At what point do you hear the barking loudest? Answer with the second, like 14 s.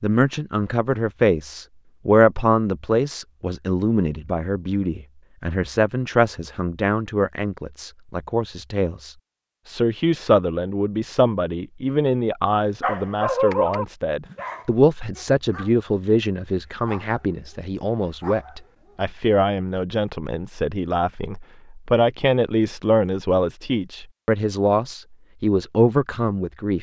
13 s.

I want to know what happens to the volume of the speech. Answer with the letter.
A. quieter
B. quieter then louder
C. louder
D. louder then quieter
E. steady
E.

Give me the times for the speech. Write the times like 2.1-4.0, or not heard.
0.0-26.7.